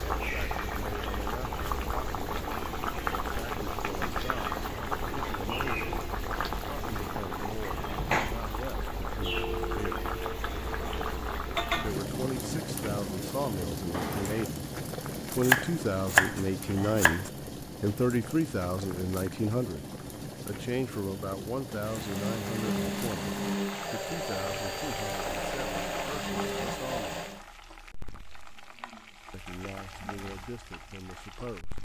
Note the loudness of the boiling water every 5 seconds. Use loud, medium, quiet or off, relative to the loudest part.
loud, loud, loud, medium, medium, quiet, quiet.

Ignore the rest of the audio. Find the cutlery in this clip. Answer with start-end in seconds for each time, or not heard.
not heard.